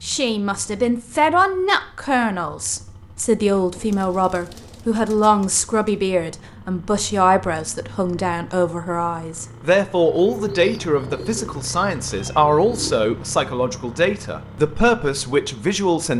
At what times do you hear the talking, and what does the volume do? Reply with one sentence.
The talking can be heard from 0.0 to 16.1 s, at a steady volume.